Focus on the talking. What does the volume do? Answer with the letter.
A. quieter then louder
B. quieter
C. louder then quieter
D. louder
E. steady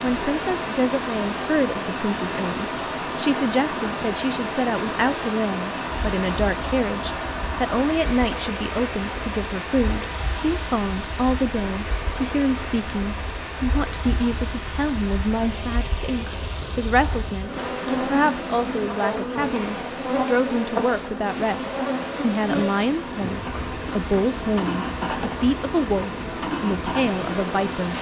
E.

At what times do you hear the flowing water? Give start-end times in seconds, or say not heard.
0.0-27.9.